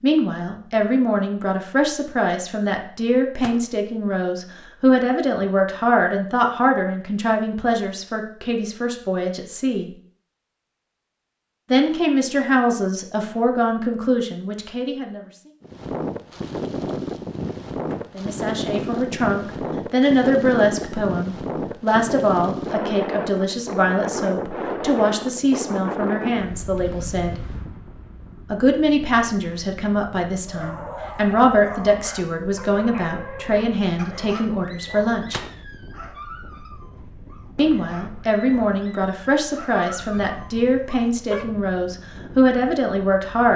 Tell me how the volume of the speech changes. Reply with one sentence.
The loudness of the speech stays about the same.